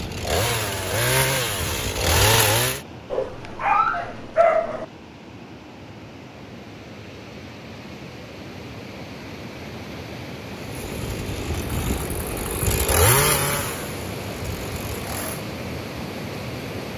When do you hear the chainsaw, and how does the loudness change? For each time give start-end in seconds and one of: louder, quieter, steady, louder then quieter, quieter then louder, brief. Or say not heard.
0.0-2.8 brief
10.6-15.4 louder then quieter.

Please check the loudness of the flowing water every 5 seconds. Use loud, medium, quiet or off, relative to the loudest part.
medium, medium, loud, loud.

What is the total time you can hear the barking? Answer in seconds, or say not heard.
2 s.